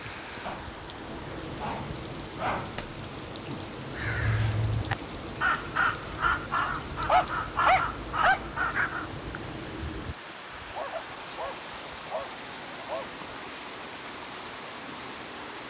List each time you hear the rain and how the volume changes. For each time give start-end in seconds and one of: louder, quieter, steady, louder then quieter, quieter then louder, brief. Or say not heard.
0.0-15.6 steady.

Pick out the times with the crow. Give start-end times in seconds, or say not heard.
3.9-9.1.